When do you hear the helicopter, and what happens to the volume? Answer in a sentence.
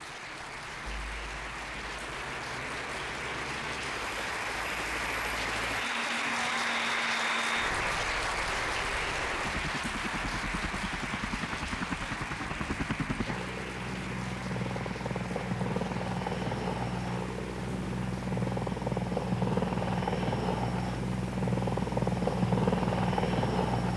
You can hear the helicopter from 0.0 to 23.9 s, getting louder.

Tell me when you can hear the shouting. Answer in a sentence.
You can't hear the shouting here.